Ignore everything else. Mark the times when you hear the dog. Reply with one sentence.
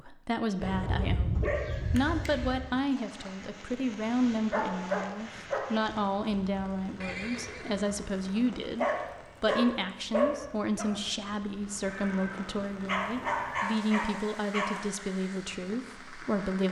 You can hear the dog from 0.6 to 2.6 s, from 4.5 to 5.7 s, from 8.8 to 10.9 s and from 12.8 to 14.8 s.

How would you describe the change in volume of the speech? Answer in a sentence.
The loudness of the speech stays about the same.